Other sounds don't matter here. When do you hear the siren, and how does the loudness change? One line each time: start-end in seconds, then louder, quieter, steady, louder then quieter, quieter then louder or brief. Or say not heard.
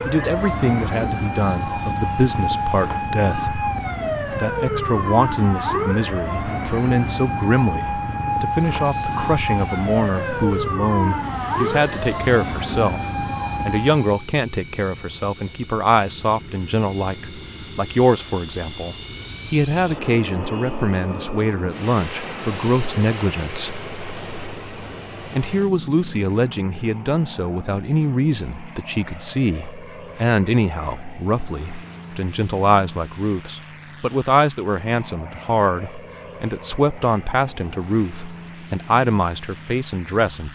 0.0-14.2 steady.